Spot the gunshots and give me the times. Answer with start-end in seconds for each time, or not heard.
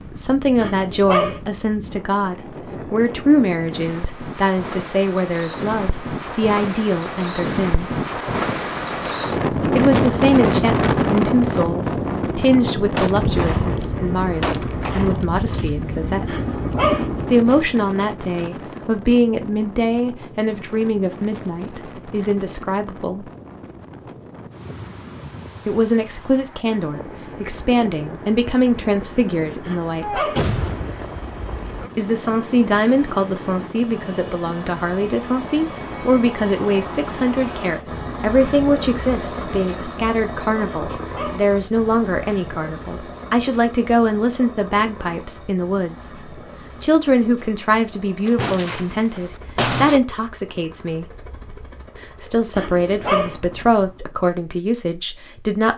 12.9-15.2, 30.0-31.9, 48.2-50.0.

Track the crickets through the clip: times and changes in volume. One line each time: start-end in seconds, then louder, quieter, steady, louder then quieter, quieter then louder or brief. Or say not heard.
not heard.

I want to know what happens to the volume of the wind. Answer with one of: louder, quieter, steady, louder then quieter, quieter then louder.
louder then quieter.